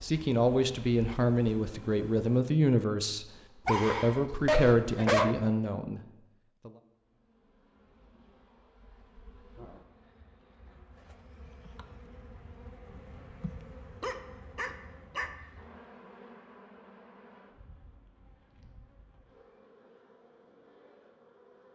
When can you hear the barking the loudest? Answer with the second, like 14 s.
5 s.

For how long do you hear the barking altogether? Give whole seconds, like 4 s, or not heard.
3 s.